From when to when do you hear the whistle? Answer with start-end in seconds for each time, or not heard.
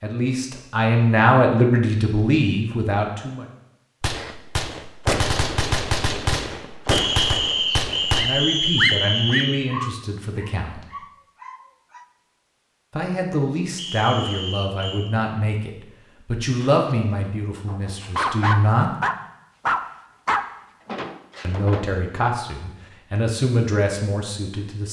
6.9-9.6, 13.8-15.1.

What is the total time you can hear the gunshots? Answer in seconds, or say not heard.
4 s.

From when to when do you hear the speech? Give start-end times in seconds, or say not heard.
0.0-3.5, 8.2-10.8, 12.9-18.9, 21.4-24.8.